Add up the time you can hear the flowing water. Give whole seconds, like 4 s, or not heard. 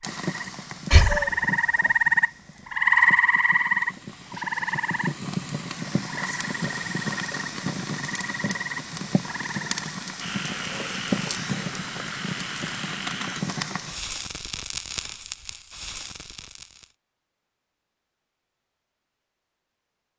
not heard.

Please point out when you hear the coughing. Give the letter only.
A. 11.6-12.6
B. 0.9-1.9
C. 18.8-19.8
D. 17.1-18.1
B.